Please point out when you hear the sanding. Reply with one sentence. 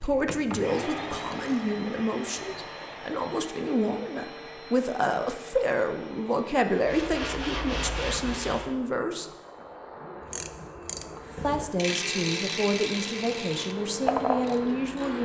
The sanding can be heard from 6.7 to 8.8 s.